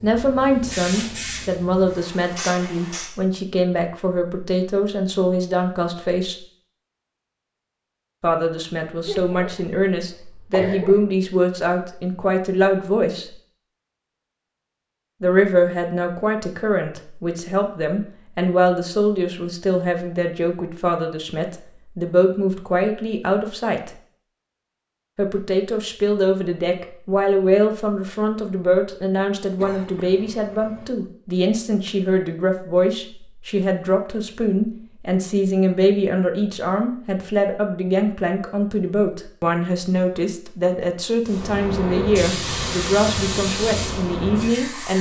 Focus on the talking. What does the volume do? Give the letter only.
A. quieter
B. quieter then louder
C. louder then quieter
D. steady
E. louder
D.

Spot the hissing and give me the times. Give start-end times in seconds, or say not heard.
0.0-3.1, 41.2-44.9.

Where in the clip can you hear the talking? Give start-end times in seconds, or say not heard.
0.0-6.3, 8.2-13.2, 15.2-23.9, 25.1-44.9.